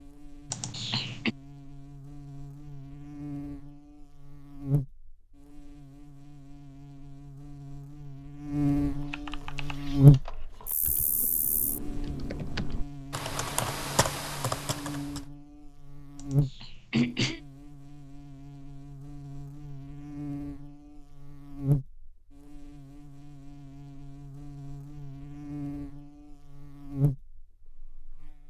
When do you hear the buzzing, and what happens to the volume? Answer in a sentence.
The buzzing can be heard from 0.0 to 28.4 s, getting louder then quieter.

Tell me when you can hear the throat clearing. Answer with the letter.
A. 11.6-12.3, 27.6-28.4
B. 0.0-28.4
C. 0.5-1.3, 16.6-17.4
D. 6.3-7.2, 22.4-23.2
C.